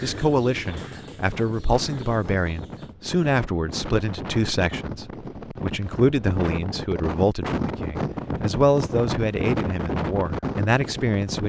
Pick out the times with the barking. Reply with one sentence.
The barking can't be heard in this clip.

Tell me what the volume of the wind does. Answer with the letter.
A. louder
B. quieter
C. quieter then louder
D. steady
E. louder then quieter
A.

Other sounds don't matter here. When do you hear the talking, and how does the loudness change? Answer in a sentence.
You can hear the talking from 0.0 to 11.4 s, at a steady volume.